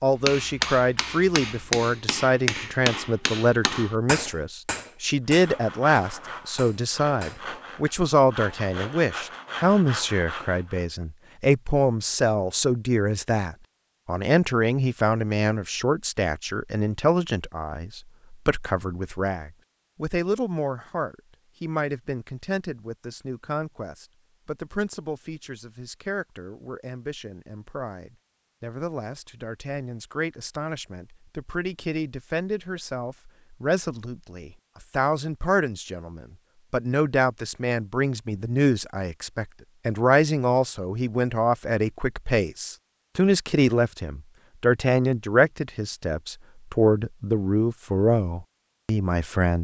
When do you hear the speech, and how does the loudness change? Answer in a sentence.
You can hear the speech from 0.0 to 49.5 s, getting quieter then louder.